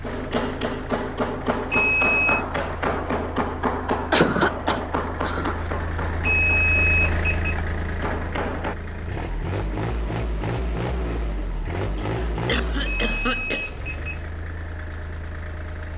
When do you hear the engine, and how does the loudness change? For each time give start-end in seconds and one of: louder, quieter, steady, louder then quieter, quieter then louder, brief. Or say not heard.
0.0-15.9 louder then quieter.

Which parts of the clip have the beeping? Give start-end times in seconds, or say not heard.
1.7-2.5, 6.2-7.5, 12.8-14.2.